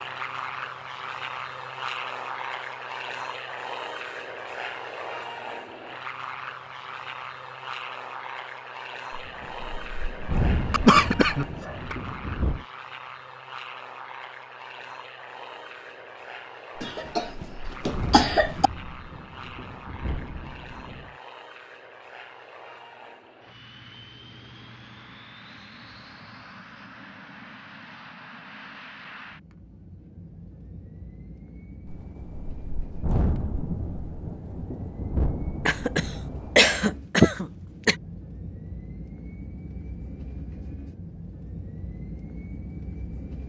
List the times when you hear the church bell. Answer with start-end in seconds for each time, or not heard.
not heard.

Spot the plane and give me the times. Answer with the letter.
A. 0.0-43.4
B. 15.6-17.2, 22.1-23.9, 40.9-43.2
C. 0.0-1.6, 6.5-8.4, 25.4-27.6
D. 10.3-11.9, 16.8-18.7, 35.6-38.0
A.